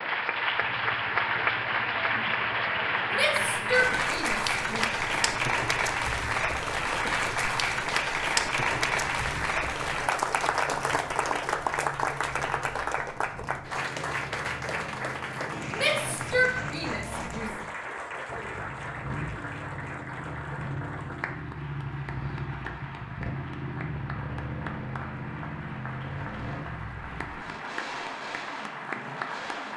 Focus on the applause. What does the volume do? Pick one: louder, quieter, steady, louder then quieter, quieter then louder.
quieter.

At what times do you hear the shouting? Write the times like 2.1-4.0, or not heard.
3.1-4.8, 15.7-17.5.